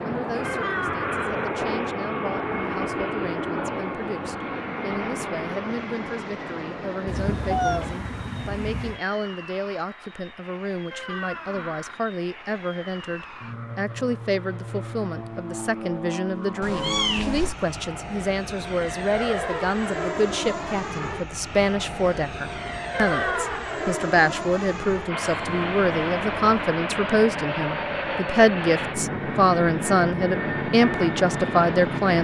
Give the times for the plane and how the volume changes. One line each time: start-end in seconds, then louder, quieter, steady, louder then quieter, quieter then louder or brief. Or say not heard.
0.0-32.1 quieter then louder.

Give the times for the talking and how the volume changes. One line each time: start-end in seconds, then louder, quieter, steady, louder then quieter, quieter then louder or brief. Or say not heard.
0.0-32.1 louder.